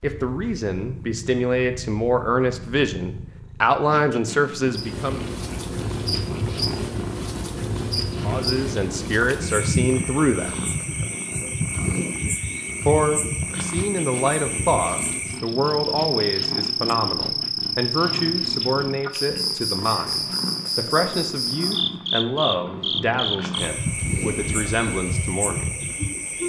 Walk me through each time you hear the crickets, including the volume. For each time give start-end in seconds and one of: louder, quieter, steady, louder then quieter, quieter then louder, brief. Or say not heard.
4.6-26.4 steady.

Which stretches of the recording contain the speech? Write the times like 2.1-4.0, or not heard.
0.0-5.2, 8.2-10.6, 12.8-25.8.